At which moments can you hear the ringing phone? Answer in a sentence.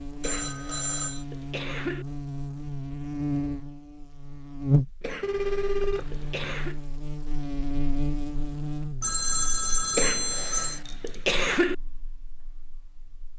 The ringing phone can be heard from 0.2 to 1.2 s, from 5.2 to 6.8 s and from 9.0 to 10.8 s.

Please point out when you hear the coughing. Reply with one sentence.
The coughing can be heard from 0.2 to 2.0 s, from 5.0 to 6.8 s and from 9.9 to 11.8 s.